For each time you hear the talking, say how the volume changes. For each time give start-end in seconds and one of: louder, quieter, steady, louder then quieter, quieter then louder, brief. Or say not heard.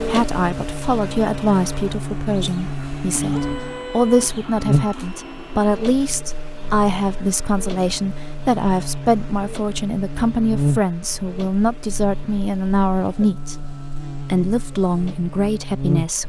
0.1-16.2 steady.